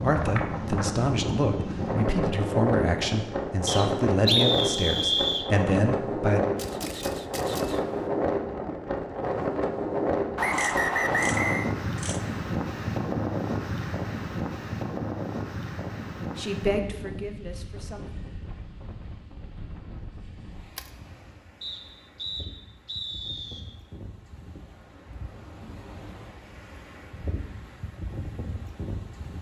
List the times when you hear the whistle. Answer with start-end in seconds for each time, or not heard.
3.6-5.5, 10.3-11.7, 21.6-23.6.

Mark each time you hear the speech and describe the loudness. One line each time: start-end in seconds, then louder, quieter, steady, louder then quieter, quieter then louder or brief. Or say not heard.
0.0-6.4 steady
16.4-18.1 brief.